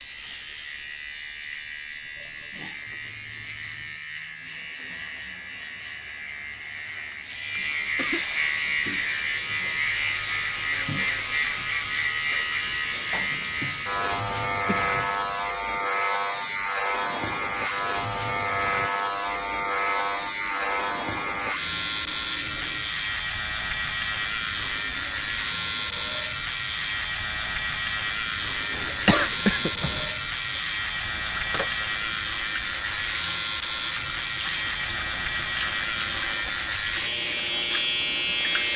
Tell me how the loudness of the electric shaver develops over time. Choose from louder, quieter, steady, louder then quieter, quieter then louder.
louder.